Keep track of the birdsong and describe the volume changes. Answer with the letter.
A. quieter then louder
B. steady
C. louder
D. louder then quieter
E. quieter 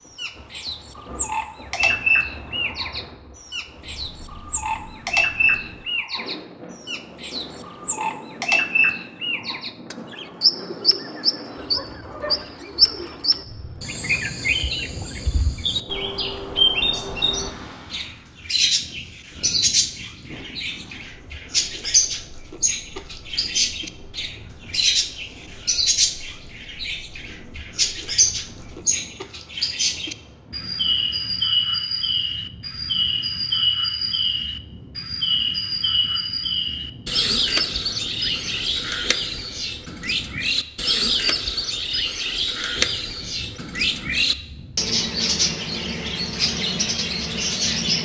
B.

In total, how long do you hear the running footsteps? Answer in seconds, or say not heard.
not heard.